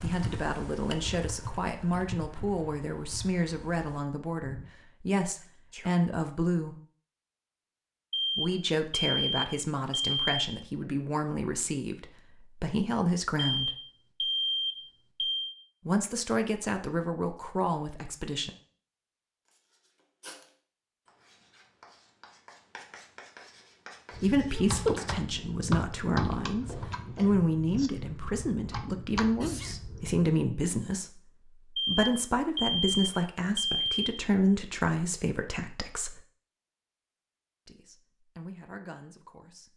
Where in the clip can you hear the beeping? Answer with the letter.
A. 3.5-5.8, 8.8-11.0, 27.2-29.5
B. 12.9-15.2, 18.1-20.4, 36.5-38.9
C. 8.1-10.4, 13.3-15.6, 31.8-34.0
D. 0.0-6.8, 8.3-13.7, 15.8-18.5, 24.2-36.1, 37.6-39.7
C.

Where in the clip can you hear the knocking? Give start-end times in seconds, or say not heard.
not heard.